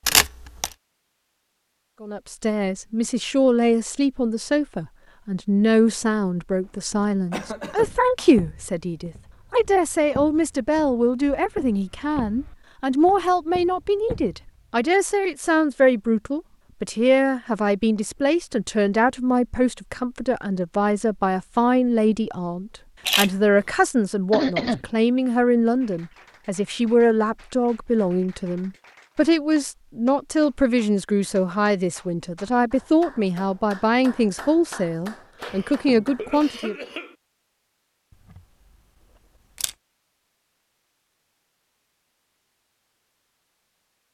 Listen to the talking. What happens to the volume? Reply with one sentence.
The volume of the talking stays about the same.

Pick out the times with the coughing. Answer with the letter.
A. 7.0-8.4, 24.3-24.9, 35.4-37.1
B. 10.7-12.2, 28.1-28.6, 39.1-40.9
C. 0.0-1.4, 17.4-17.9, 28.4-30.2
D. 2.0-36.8
A.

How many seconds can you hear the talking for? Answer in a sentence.
You can hear the talking for 35 seconds altogether.